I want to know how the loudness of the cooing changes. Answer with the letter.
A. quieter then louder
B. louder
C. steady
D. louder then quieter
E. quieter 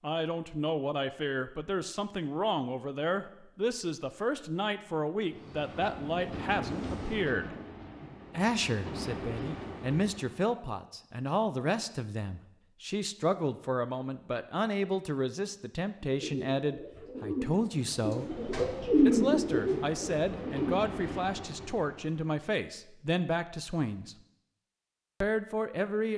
D.